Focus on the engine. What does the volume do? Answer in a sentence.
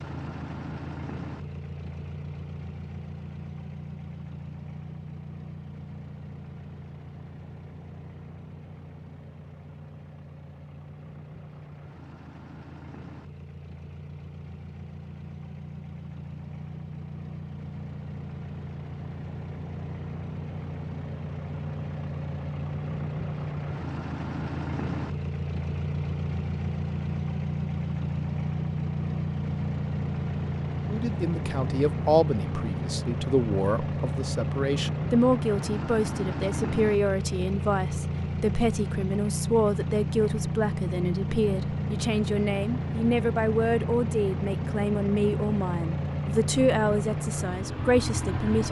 The loudness of the engine goes up.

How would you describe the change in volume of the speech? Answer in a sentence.
The loudness of the speech stays about the same.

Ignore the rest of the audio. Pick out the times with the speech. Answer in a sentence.
The speech can be heard from 30.9 to 48.6 s.